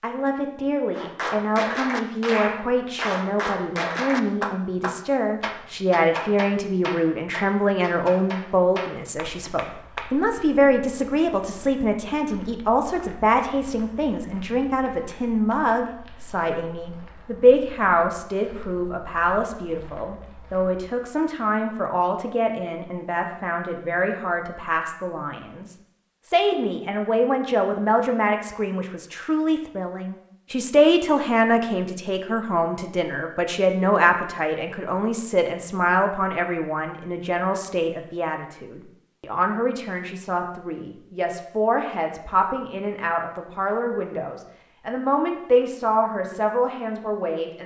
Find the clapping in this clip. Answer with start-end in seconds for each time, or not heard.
0.9-10.1.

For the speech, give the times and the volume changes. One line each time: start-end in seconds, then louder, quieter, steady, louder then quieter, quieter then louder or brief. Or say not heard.
0.0-47.6 steady.